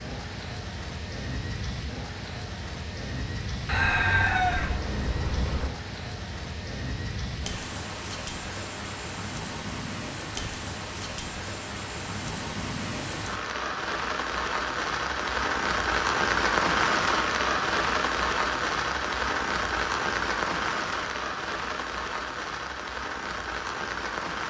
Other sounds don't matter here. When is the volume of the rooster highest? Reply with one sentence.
The volume of the rooster peaks at 4 seconds.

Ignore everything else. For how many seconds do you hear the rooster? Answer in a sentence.
You can hear the rooster for 2 seconds altogether.